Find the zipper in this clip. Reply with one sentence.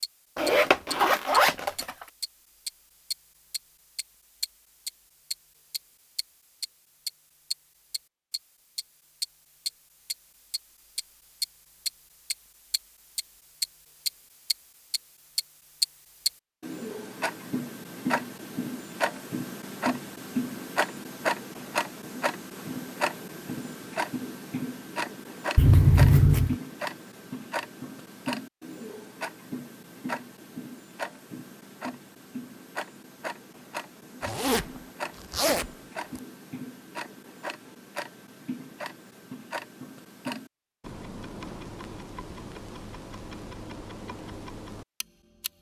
You can hear the zipper from 0.3 to 1.7 s, from 25.6 to 26.6 s, from 34.2 to 34.6 s and from 35.3 to 36.2 s.